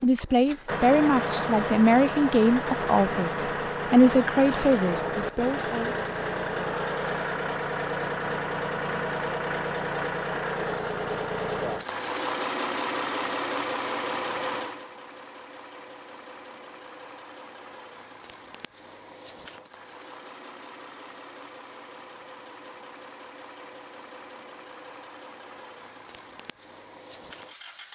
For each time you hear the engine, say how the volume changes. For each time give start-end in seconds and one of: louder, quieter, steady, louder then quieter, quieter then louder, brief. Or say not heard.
0.0-27.8 quieter.